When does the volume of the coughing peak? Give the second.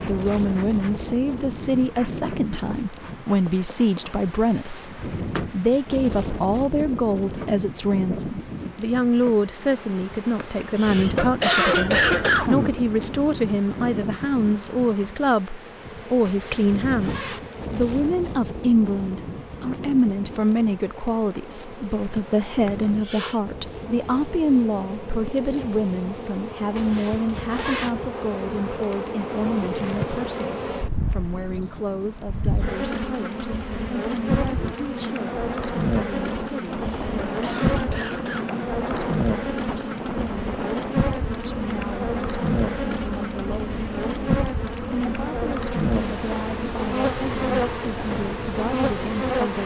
12 s.